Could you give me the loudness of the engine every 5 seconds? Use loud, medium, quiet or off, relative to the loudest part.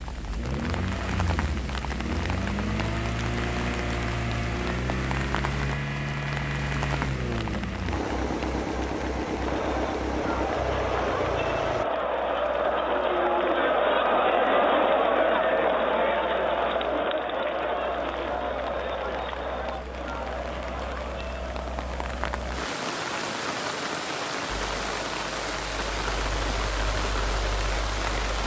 loud, loud, loud, off, off, medium.